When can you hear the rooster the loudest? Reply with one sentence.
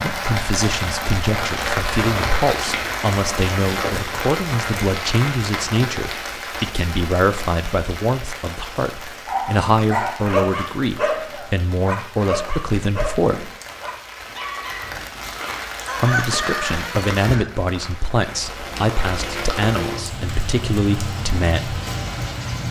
The volume of the rooster peaks at 16 seconds.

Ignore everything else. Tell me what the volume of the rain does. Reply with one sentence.
The volume of the rain goes down, then up.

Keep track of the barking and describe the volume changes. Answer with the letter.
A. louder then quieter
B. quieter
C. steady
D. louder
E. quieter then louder
B.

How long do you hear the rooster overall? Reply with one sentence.
The rooster can be heard for 2 seconds in total.